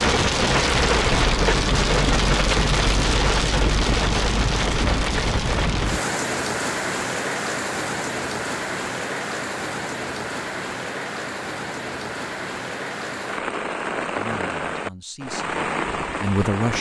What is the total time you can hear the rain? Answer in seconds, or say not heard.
17 s.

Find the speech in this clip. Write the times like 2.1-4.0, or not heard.
14.2-16.7.